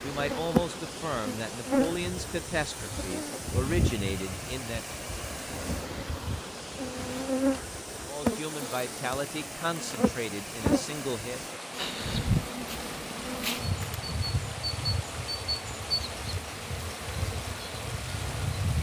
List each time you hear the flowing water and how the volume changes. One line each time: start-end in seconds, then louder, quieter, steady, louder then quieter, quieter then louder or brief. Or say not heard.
0.0-18.7 steady.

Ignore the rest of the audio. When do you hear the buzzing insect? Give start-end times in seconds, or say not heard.
0.0-18.7.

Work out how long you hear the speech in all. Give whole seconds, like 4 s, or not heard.
8 s.